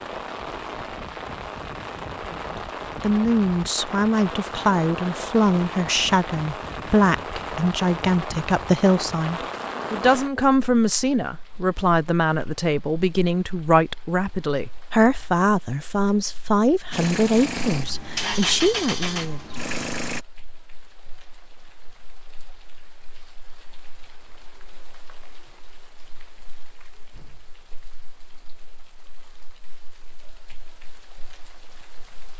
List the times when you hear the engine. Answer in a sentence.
You can hear the engine from 16.9 to 20.2 s.